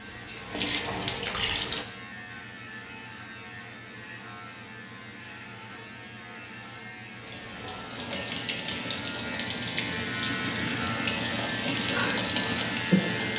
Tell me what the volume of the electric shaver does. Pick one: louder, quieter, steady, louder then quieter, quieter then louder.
louder.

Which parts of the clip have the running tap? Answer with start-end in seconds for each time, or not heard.
0.0-1.9, 7.2-13.3.